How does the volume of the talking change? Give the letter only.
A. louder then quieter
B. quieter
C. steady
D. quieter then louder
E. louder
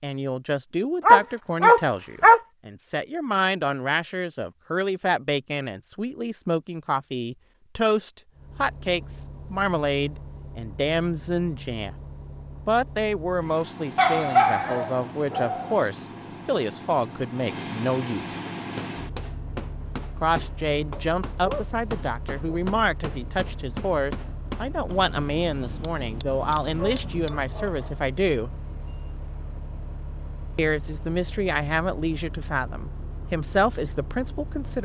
C.